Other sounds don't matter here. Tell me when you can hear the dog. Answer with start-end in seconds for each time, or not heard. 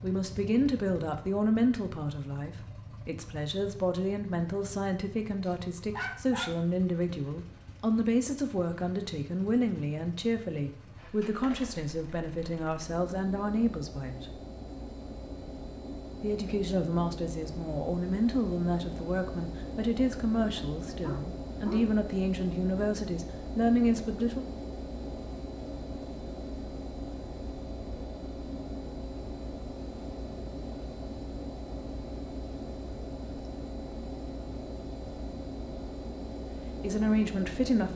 5.5-6.5, 20.6-21.9.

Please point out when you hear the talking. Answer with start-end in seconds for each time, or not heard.
0.0-14.3, 16.2-24.4, 36.7-37.9.